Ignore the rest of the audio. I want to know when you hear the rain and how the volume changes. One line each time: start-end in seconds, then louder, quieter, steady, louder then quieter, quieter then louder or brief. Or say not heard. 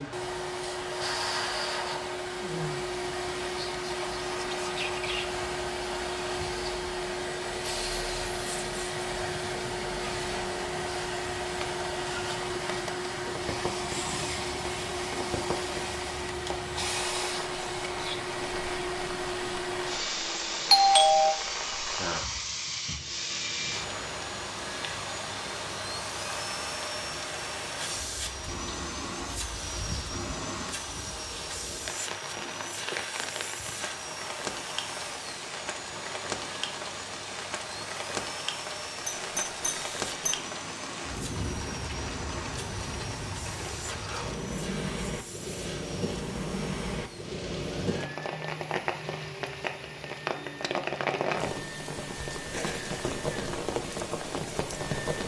0.0-55.2 louder.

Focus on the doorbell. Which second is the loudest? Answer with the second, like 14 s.
21 s.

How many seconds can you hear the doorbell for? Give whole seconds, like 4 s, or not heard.
2 s.